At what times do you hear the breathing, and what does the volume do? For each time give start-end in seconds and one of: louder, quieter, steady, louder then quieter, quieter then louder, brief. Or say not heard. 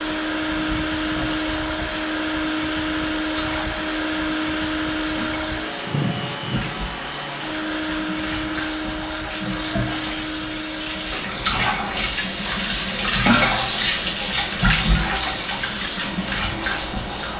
not heard.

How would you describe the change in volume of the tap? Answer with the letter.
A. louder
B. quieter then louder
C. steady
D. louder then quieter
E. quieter
A.